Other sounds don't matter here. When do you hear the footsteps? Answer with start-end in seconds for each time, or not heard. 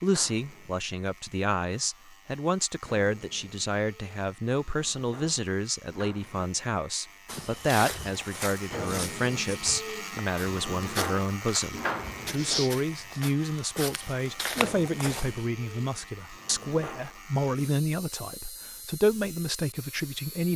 7.2-15.4.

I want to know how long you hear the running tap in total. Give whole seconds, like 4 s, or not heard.
not heard.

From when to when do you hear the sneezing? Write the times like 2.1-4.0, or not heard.
not heard.